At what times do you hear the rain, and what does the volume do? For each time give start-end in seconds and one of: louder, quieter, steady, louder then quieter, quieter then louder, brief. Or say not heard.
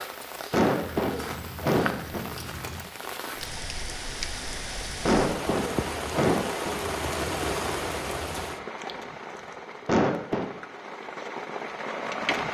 0.0-12.5 louder then quieter.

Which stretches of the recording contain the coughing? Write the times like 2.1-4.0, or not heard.
0.5-2.3, 5.0-6.8, 9.8-10.4.